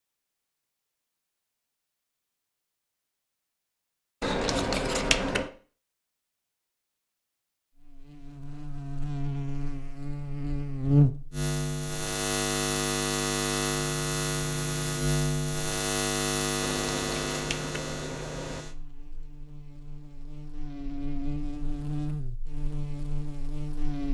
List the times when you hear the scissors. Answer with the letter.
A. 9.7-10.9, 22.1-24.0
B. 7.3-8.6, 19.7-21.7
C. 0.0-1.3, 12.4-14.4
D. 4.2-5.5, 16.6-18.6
D.